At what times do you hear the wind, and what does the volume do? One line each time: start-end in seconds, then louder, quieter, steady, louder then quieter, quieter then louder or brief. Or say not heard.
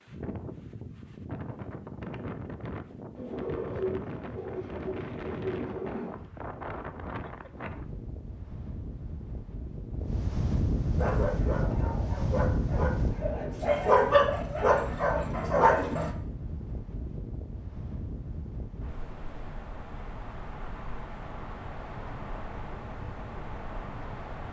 0.0-24.4 louder then quieter.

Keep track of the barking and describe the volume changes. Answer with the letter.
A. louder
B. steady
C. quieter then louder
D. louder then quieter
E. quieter
A.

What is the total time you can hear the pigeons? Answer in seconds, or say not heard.
3 s.